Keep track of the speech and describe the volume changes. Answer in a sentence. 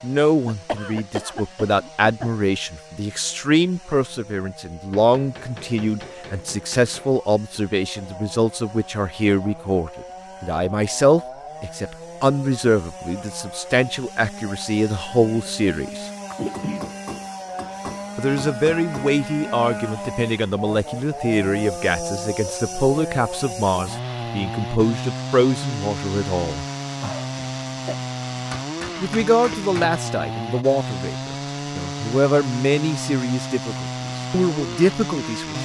The loudness of the speech stays about the same.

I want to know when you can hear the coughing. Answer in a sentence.
You can hear the coughing from 0.5 to 2.3 s, from 16.3 to 16.9 s and from 27.0 to 27.9 s.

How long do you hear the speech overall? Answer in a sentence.
The speech can be heard for 31 seconds in total.